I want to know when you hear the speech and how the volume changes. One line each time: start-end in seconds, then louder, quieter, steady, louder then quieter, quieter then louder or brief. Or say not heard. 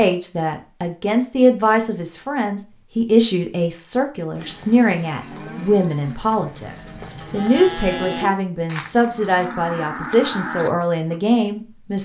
0.0-11.9 steady.